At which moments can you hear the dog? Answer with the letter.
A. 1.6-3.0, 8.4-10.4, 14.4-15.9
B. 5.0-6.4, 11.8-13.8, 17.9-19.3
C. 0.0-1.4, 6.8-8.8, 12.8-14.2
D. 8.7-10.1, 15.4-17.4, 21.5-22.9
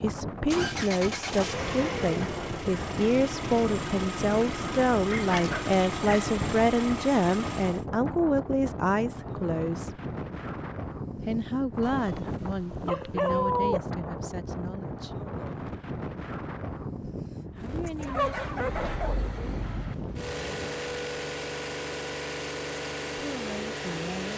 B.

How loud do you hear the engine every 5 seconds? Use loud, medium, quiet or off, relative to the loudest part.
loud, loud, off, medium, loud.